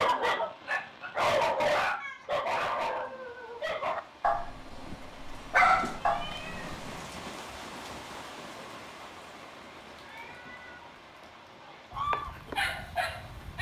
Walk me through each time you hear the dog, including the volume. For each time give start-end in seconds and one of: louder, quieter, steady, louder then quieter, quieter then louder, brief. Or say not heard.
0.0-7.0 quieter then louder
11.9-13.5 brief.